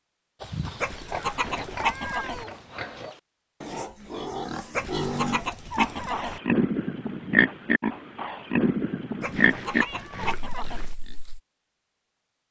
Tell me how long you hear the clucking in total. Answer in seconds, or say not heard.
5 s.